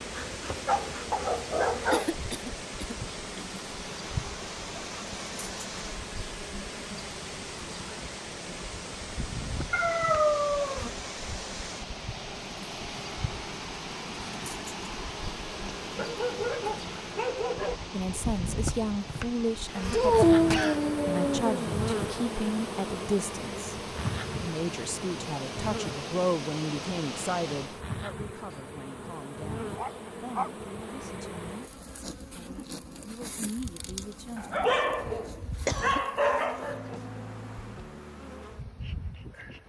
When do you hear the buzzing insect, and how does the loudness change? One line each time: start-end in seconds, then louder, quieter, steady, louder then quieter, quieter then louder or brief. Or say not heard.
0.0-39.6 louder then quieter.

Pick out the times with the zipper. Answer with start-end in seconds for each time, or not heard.
not heard.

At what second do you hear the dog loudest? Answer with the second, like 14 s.
20 s.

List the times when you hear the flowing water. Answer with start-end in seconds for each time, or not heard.
0.0-27.9.